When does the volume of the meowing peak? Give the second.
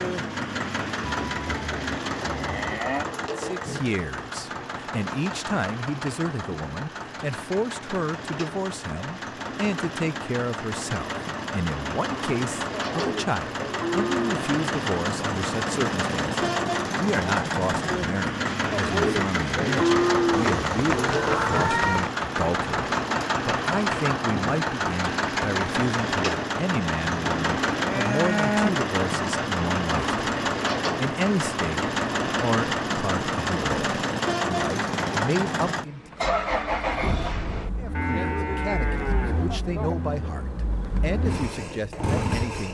22 s.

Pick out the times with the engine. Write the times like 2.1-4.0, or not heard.
0.0-42.6.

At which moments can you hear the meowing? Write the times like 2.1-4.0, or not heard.
20.3-22.1.